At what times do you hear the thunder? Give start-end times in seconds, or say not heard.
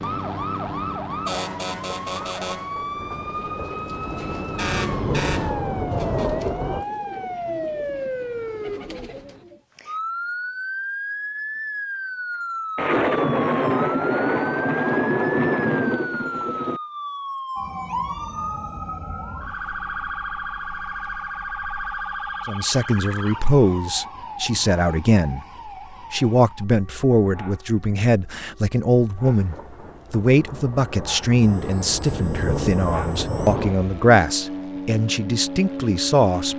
2.0-6.8, 12.8-16.8, 29.2-33.9.